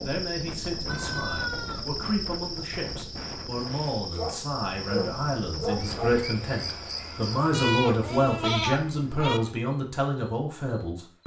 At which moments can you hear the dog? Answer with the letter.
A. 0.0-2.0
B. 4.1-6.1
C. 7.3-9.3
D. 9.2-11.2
B.